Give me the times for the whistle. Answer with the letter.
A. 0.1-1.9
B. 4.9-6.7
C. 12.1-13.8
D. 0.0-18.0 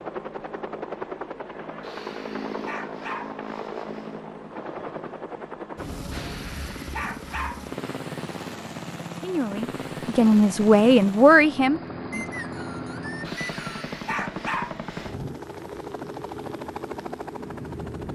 C.